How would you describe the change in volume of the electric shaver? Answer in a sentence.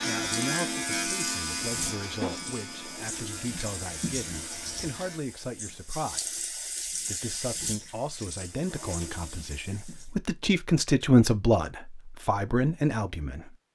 The volume of the electric shaver goes down.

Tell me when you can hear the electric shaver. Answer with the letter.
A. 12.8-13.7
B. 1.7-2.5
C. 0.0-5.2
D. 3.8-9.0
C.